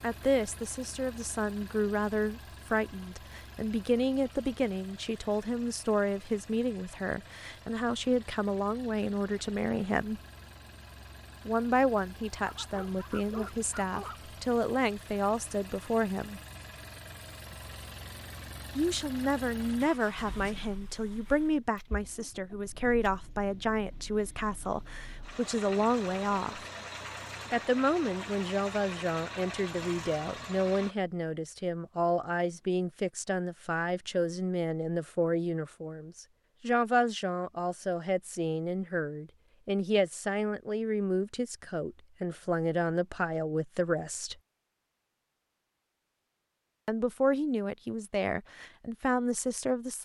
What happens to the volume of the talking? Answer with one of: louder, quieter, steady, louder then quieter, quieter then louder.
steady.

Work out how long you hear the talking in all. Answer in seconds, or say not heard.
43 s.